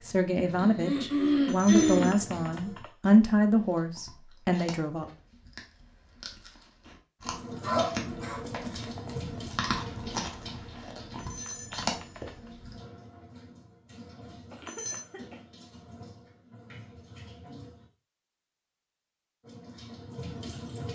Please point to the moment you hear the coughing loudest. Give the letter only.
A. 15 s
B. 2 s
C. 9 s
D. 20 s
B.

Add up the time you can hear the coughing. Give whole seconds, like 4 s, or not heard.
3 s.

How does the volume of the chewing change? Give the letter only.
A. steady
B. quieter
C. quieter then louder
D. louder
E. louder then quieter
D.